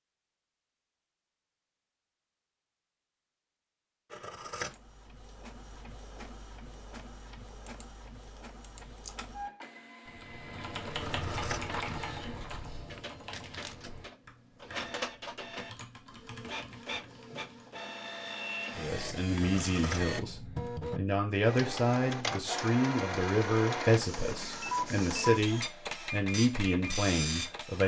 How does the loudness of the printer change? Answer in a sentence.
The volume of the printer goes up.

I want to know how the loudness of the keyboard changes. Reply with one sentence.
The loudness of the keyboard goes down.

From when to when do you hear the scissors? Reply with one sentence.
The scissors can be heard from 4.1 to 4.8 s, from 11.0 to 11.8 s and from 19.4 to 20.1 s.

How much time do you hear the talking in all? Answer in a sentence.
You can hear the talking for 9 seconds altogether.